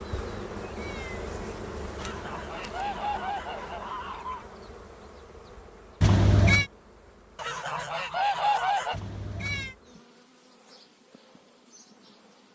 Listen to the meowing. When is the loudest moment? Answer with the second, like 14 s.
6 s.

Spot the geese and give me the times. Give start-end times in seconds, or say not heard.
1.9-4.5, 7.3-9.0.